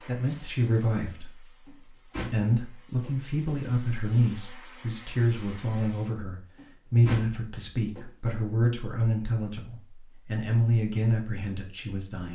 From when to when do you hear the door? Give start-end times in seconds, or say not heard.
1.6-3.1, 6.5-8.1.